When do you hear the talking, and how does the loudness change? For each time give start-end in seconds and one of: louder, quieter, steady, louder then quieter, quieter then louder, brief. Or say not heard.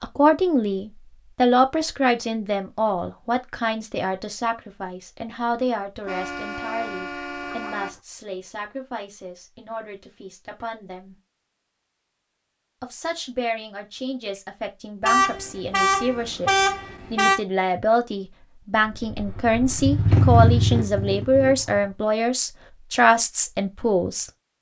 0.0-11.2 quieter
12.8-24.3 louder.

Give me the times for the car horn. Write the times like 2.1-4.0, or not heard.
6.0-8.0, 15.0-17.4.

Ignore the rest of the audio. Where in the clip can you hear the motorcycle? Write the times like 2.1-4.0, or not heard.
18.8-21.9.